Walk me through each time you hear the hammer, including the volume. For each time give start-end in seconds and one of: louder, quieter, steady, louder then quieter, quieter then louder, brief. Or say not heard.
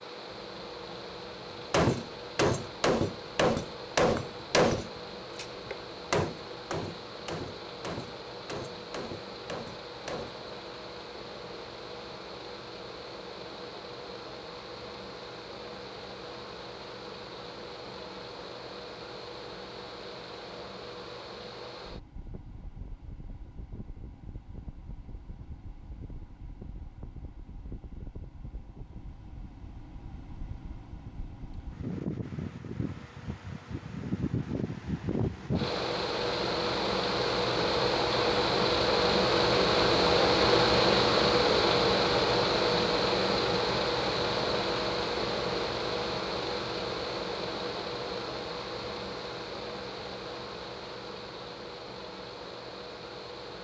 1.7-10.3 quieter.